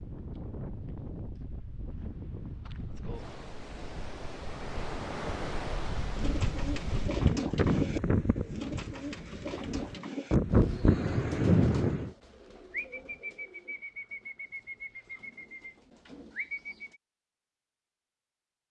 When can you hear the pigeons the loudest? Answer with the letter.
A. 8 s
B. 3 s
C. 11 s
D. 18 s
A.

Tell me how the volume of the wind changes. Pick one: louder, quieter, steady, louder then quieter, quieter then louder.
louder.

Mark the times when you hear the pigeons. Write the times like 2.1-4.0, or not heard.
6.1-17.0.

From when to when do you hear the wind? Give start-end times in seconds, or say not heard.
0.0-12.1.